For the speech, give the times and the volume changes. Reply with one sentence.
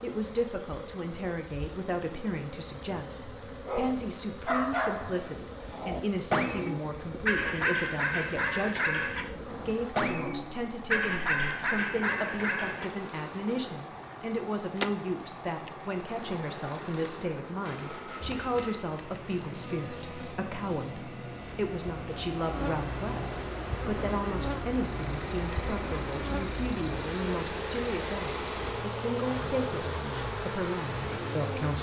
You can hear the speech from 0.0 to 31.7 s, at a steady volume.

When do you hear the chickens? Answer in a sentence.
You can't hear the chickens here.